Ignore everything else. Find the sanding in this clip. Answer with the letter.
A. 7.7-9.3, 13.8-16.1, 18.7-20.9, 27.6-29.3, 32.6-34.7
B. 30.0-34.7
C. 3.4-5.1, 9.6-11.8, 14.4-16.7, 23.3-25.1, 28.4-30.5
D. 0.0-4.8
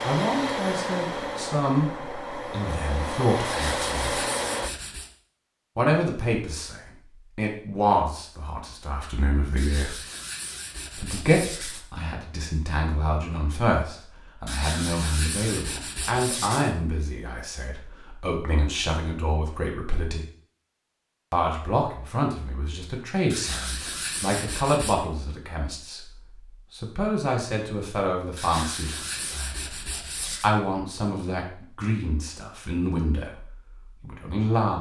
C.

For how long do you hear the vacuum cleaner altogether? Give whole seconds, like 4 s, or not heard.
5 s.